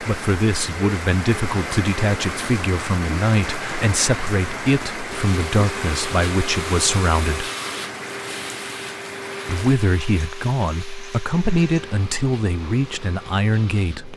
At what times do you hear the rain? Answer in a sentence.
The rain can be heard from 0.0 to 14.1 s.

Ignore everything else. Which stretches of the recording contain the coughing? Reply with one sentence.
The coughing can't be heard in this clip.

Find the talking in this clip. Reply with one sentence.
The talking can be heard from 0.0 to 7.5 s and from 9.4 to 14.1 s.